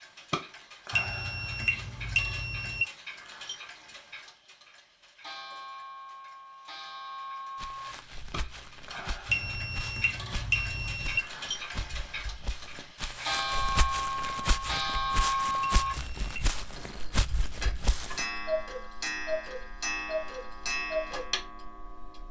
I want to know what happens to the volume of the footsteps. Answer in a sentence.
The loudness of the footsteps goes up.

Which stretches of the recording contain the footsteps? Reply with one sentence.
The footsteps can be heard from 7.5 to 18.2 s.